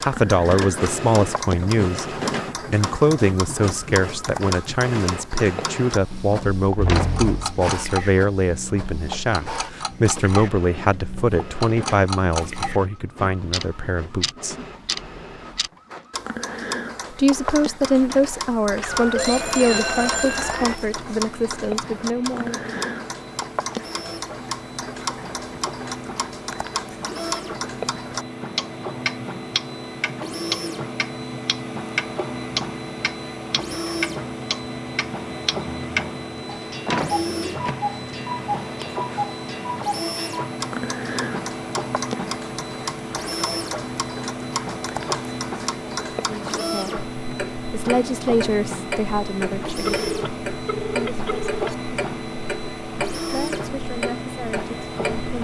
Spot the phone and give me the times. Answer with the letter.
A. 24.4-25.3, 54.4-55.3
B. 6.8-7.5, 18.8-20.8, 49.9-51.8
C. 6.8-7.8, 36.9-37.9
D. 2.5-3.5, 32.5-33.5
B.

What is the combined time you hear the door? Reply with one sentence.
The door can be heard for 2 seconds in total.